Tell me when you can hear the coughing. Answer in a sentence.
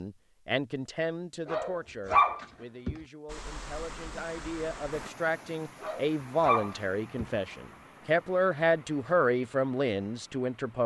You can't hear the coughing here.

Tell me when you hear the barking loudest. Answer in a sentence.
The volume of the barking peaks at 2 seconds.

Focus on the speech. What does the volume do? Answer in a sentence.
The loudness of the speech goes down, then up.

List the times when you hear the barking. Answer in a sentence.
The barking can be heard from 1.4 to 3.0 s and from 5.8 to 7.3 s.